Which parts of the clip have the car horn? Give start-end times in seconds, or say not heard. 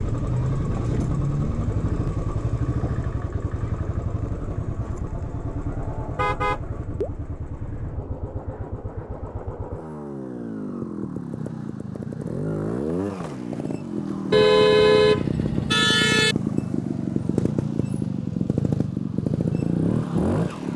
6.2-7.1, 14.3-16.4.